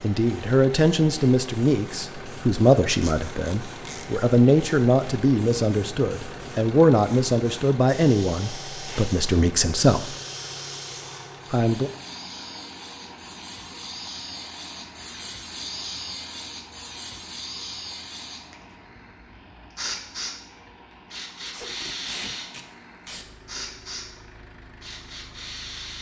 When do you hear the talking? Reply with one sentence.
The talking can be heard from 0.0 to 10.2 s and from 11.5 to 11.9 s.